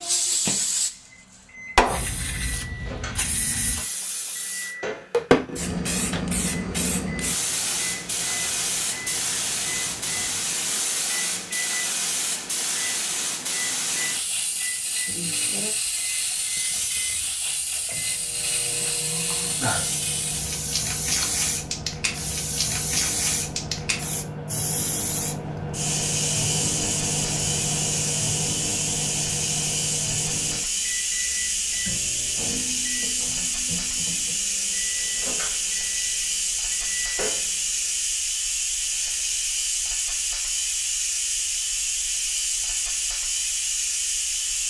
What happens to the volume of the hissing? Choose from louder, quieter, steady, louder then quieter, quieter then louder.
steady.